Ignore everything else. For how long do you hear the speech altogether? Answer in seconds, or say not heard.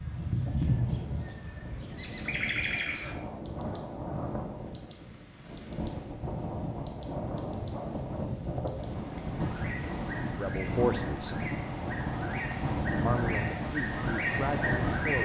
3 s.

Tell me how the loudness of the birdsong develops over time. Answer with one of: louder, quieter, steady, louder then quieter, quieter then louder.
quieter then louder.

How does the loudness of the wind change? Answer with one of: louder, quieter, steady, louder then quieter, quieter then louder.
louder.